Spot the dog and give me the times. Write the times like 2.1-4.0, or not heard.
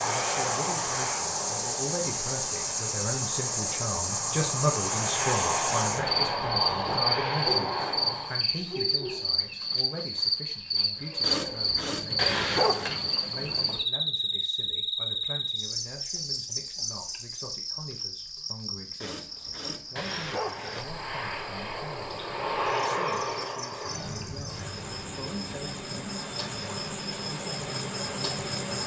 11.2-12.9, 19.0-20.9.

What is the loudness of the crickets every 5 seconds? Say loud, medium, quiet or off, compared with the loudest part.
loud, loud, loud, medium, quiet, medium.